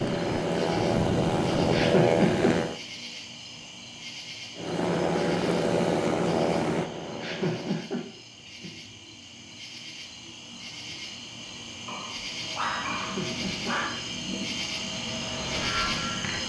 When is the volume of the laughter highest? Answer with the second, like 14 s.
2 s.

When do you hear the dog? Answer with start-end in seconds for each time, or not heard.
11.8-13.9.